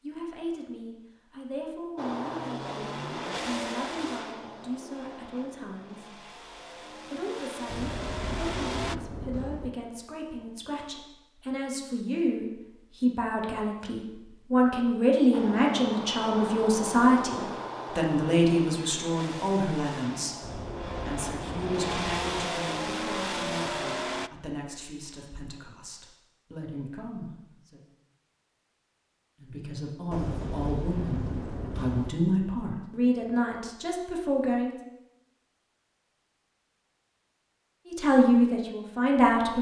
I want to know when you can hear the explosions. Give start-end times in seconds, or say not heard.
7.7-9.7, 20.4-22.4, 30.1-32.1.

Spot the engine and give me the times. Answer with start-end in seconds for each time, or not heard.
1.9-8.9, 15.3-24.3.